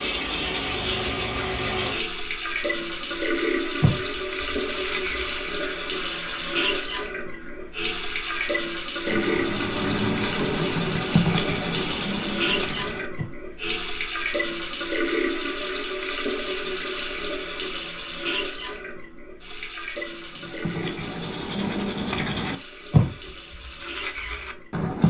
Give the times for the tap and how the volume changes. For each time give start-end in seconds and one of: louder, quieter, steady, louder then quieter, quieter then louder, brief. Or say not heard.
0.0-25.0 quieter.